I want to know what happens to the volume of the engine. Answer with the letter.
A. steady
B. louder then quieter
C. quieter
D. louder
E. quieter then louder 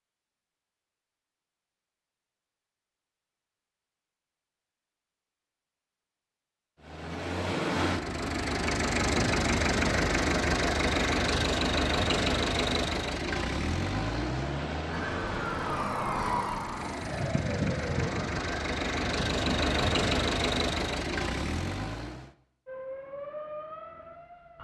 E.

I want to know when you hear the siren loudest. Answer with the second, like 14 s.
16 s.